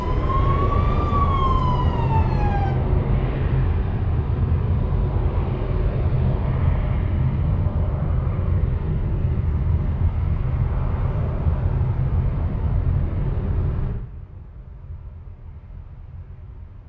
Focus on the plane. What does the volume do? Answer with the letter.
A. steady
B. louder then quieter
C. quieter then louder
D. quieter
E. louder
D.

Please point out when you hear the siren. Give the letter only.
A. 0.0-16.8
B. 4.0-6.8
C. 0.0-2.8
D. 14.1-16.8
C.